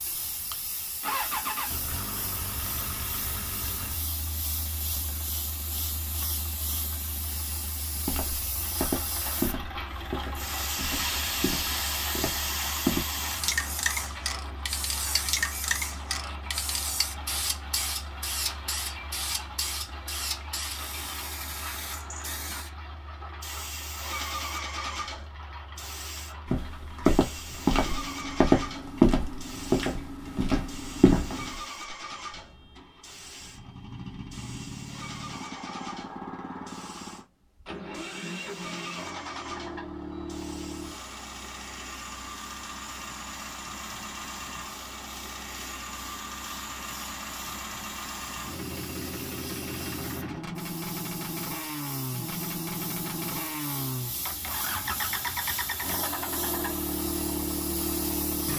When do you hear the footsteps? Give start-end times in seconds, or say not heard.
7.9-13.1, 26.4-31.6.